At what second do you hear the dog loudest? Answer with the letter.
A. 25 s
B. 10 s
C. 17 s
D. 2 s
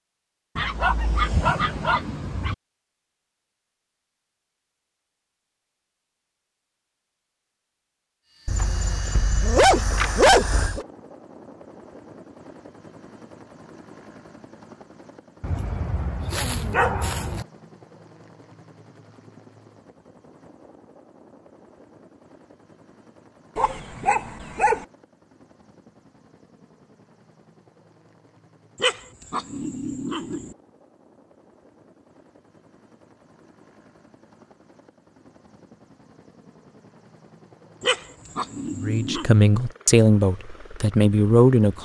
B.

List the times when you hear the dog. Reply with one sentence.
The dog can be heard from 0.6 to 2.5 s, from 8.4 to 10.8 s, from 15.4 to 17.4 s, from 23.6 to 24.9 s, from 28.8 to 30.5 s and from 37.8 to 39.3 s.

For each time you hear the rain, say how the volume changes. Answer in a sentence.
You can't hear the rain here.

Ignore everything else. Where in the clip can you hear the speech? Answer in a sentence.
The speech can be heard from 38.8 to 41.8 s.